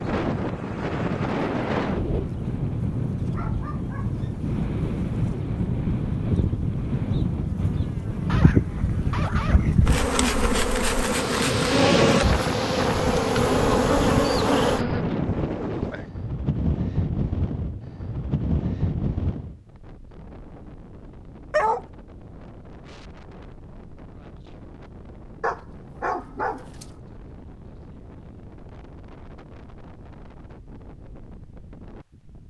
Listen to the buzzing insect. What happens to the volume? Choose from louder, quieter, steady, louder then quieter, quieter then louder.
louder.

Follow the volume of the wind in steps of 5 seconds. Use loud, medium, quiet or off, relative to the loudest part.
loud, loud, loud, loud, quiet, quiet, quiet.